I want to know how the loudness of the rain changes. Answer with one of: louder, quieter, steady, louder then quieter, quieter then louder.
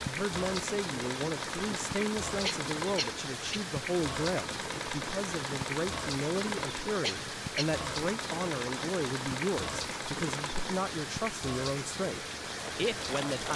steady.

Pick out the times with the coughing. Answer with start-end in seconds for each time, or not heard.
2.4-3.6, 7.0-7.7.